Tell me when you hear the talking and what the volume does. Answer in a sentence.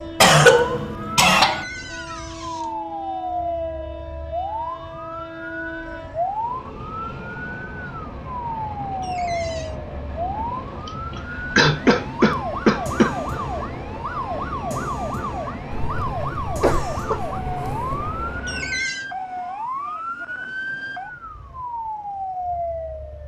You can't hear the talking here.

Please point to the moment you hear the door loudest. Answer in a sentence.
The volume of the door peaks at 19 seconds.